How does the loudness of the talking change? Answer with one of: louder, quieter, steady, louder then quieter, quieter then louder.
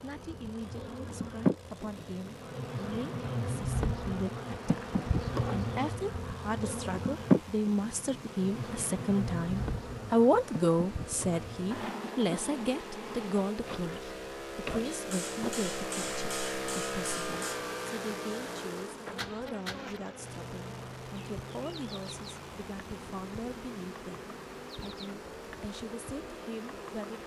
louder then quieter.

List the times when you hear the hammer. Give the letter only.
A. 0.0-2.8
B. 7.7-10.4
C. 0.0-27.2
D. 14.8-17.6
D.